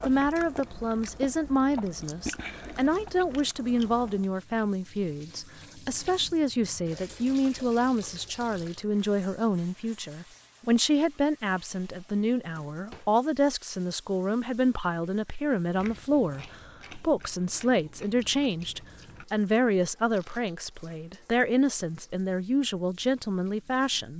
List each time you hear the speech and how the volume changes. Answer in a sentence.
The speech can be heard from 0.0 to 24.1 s, at a steady volume.